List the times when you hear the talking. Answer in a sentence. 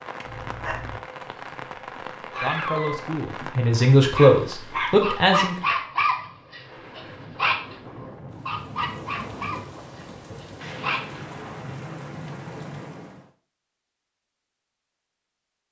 You can hear the talking from 2.4 to 5.5 s.